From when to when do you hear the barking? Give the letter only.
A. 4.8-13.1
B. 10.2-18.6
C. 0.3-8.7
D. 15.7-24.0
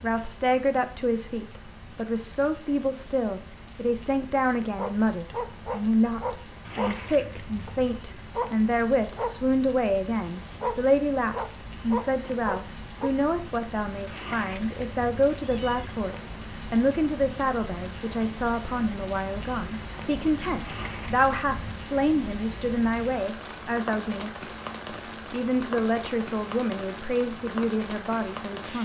A.